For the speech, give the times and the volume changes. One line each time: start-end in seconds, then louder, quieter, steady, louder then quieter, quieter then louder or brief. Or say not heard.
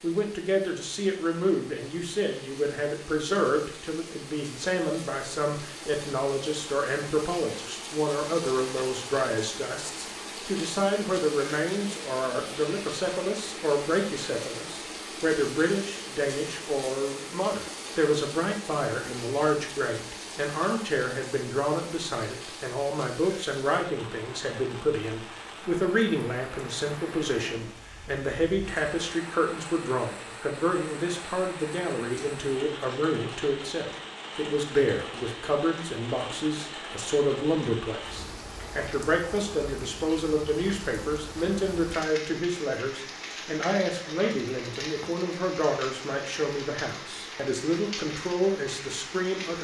0.0-49.5 steady.